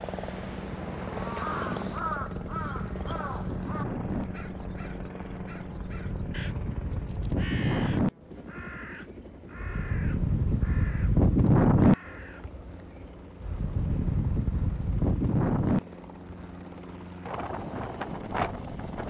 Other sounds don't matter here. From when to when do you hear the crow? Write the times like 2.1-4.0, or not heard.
1.1-12.4.